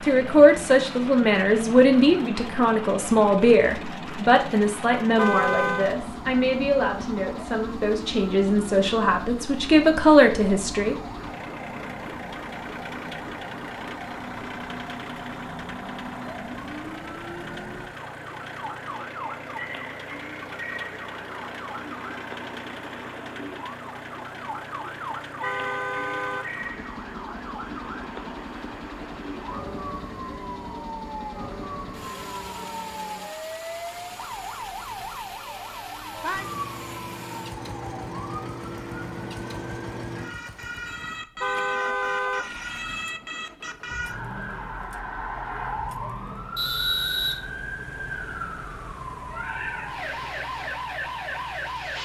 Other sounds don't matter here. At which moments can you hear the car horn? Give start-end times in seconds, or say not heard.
5.2-6.0, 25.4-26.5, 41.4-42.5.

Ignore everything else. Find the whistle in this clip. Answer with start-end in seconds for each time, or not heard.
46.5-47.4.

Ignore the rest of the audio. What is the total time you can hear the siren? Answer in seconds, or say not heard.
52 s.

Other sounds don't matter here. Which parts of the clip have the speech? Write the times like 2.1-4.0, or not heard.
0.0-10.9.